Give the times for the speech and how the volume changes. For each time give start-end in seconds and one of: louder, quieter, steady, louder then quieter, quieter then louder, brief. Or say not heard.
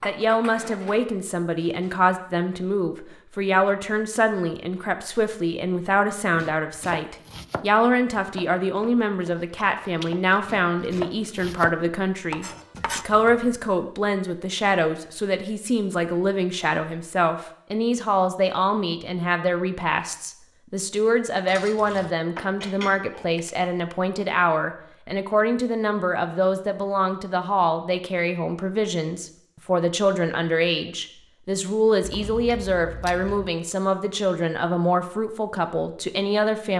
0.0-36.7 steady.